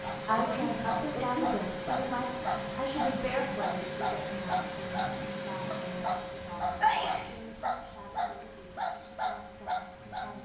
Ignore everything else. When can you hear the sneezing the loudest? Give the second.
7 s.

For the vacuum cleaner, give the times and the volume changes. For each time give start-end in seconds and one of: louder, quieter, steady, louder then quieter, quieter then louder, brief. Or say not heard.
0.0-10.3 quieter.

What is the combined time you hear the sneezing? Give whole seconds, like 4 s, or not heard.
2 s.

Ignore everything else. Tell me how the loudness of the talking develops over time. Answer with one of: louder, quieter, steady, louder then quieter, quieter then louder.
quieter.